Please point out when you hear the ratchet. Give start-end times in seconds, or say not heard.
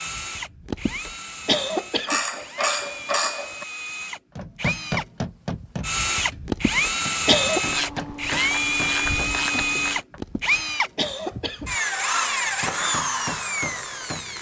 2.0-3.6, 7.7-10.0.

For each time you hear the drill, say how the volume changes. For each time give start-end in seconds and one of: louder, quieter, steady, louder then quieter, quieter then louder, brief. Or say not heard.
0.0-14.3 louder.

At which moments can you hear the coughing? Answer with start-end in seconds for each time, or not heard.
0.7-2.2, 6.5-7.6, 10.2-11.7.